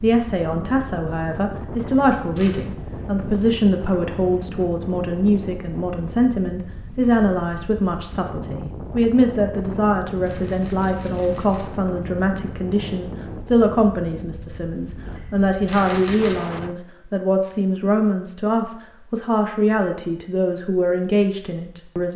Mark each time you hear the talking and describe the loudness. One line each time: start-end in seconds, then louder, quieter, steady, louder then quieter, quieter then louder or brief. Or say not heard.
0.0-22.1 steady.